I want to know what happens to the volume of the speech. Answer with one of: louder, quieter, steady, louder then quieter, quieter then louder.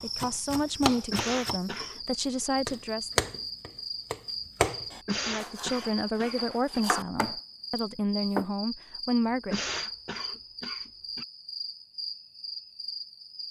steady.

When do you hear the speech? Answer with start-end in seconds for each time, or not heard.
0.0-3.2, 5.2-9.6.